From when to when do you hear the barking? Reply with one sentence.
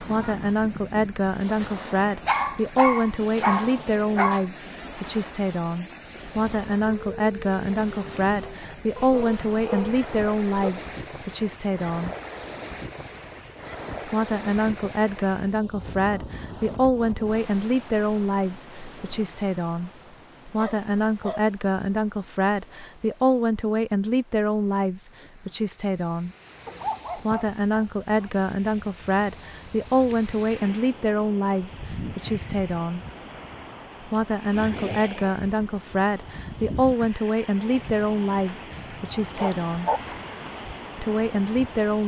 You can hear the barking from 2.2 to 4.5 s, from 8.9 to 10.7 s, from 20.1 to 21.4 s, from 26.6 to 28.3 s and from 38.5 to 40.0 s.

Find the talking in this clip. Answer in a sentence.
You can hear the talking from 0.0 to 12.2 s, from 14.1 to 26.3 s, from 27.1 to 33.0 s, from 34.0 to 39.9 s and from 41.0 to 42.0 s.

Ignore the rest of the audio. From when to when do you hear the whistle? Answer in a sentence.
The whistle can't be heard in this clip.